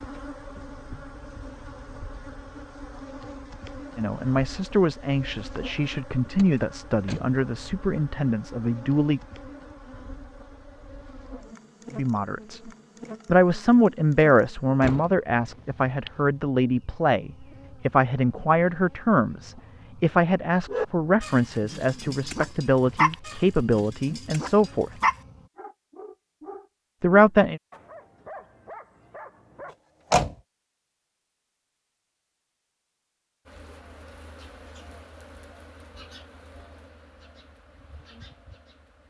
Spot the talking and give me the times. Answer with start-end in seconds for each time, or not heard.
4.0-9.2, 11.9-12.6, 13.2-24.9, 27.0-27.6.